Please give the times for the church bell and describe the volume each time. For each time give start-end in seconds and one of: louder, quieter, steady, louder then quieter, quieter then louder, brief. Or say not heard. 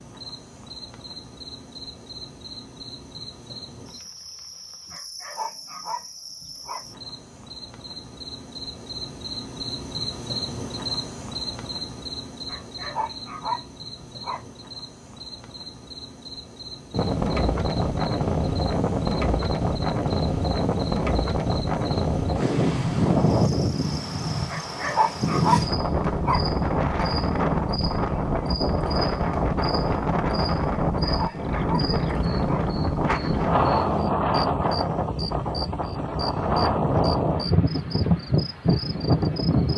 not heard.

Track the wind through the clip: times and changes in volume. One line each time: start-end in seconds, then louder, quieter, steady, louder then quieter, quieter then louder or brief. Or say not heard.
16.9-39.7 steady.